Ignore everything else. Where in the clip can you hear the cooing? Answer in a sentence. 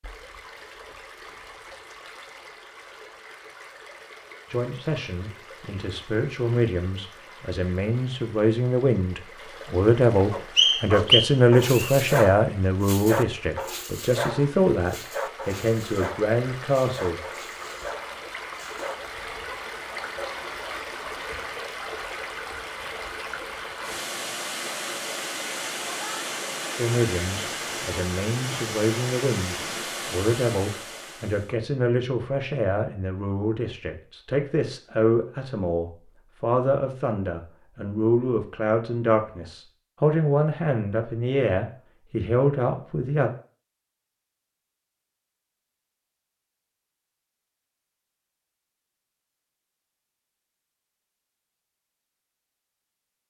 The cooing can't be heard in this clip.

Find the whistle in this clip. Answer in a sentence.
The whistle can be heard from 10.6 to 11.9 s.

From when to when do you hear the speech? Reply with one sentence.
The speech can be heard from 4.5 to 17.2 s and from 26.8 to 43.3 s.